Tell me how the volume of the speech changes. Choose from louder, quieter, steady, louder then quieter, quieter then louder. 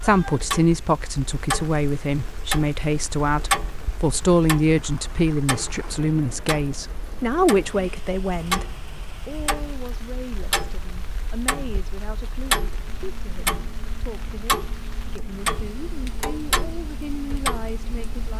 quieter.